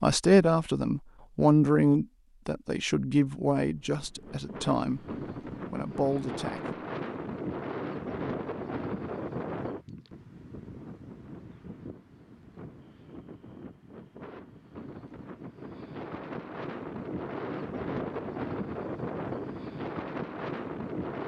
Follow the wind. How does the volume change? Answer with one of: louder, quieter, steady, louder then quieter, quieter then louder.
quieter then louder.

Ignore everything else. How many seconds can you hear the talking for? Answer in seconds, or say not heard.
6 s.